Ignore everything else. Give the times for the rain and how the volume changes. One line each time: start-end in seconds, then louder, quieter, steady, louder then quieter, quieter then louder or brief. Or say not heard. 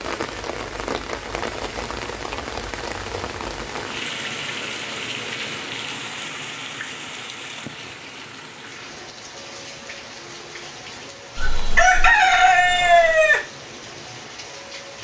0.0-14.9 quieter.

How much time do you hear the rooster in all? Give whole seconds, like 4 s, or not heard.
2 s.